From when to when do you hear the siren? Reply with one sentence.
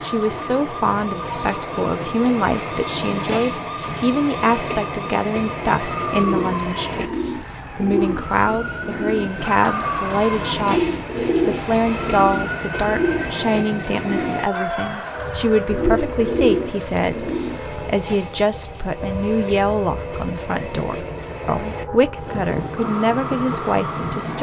The siren can be heard from 0.0 to 24.3 s.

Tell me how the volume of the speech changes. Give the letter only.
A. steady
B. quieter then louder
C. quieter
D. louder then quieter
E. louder
A.